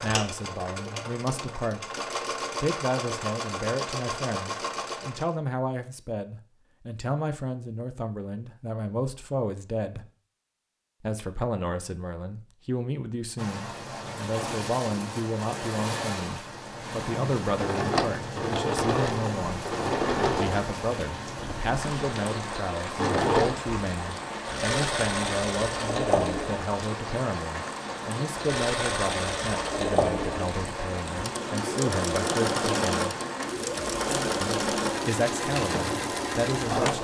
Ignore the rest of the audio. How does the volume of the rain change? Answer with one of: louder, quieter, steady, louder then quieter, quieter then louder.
steady.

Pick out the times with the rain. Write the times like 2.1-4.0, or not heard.
13.3-36.9.